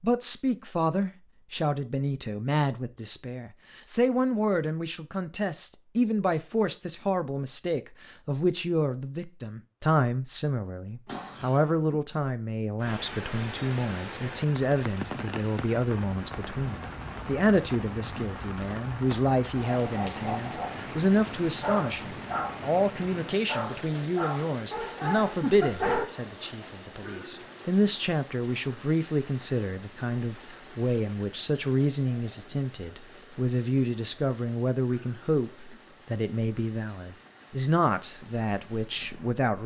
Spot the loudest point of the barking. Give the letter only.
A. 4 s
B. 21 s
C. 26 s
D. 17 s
C.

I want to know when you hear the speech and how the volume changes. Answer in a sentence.
The speech can be heard from 0.0 to 39.6 s, at a steady volume.